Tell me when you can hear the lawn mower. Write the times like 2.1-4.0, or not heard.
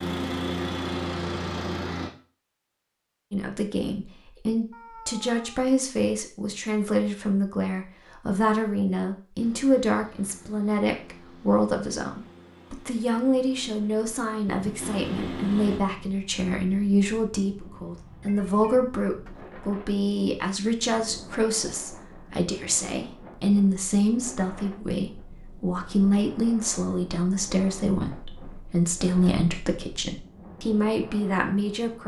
0.0-2.1, 9.3-15.8.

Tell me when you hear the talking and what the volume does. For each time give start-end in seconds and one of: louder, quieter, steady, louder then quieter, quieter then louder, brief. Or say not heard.
3.3-32.0 steady.